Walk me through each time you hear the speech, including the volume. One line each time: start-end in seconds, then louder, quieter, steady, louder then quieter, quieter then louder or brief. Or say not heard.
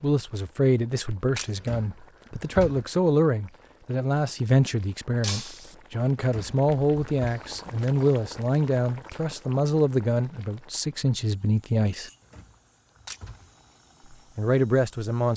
0.0-12.1 steady
14.3-15.3 brief.